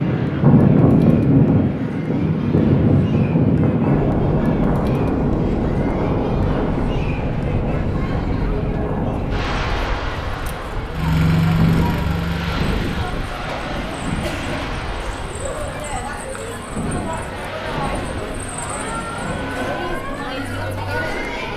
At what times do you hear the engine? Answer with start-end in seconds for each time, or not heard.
10.9-13.2.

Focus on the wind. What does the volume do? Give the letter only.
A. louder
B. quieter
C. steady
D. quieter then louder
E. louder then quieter
B.